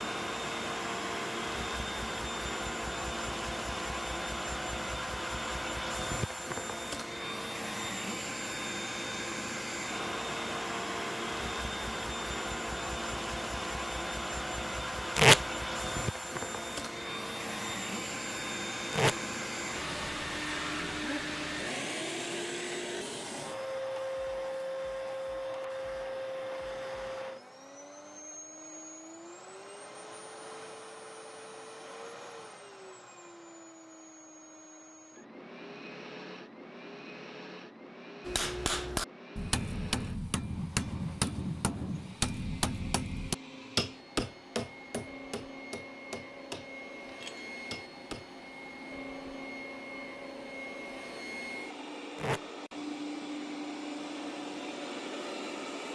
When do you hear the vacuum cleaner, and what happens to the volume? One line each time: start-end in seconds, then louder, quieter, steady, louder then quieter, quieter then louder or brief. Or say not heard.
0.0-55.9 quieter then louder.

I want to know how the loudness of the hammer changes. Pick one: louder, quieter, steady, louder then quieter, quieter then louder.
quieter.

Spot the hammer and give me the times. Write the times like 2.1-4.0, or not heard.
38.2-48.2.